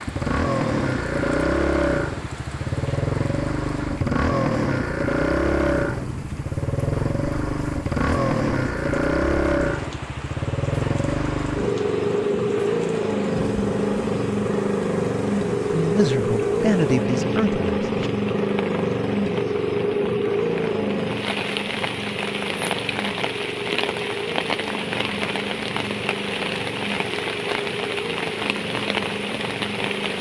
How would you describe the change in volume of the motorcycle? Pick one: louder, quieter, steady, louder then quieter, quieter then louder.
quieter.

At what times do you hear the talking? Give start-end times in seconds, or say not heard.
15.7-18.1.